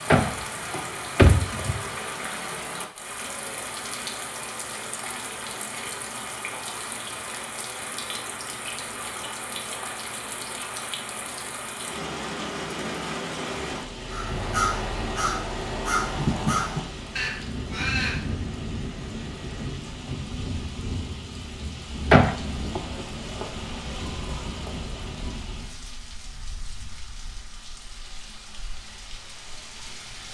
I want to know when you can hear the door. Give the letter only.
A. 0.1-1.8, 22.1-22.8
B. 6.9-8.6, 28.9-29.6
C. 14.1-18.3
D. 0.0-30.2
A.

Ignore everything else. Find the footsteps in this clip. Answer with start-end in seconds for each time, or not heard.
not heard.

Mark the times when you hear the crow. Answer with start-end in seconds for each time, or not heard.
14.1-18.3.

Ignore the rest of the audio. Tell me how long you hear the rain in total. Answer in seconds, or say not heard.
30 s.